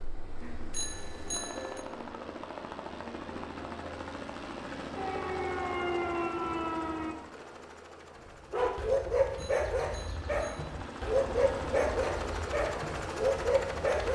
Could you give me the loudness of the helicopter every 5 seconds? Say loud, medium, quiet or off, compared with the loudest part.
loud, medium, loud.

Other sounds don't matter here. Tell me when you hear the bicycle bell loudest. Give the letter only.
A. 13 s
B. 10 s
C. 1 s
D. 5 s
C.